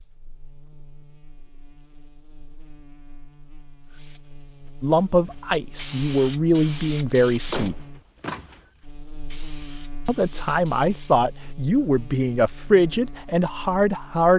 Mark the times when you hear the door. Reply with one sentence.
You can hear the door from 7.3 to 8.7 s.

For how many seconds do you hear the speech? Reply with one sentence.
You can hear the speech for 7 seconds altogether.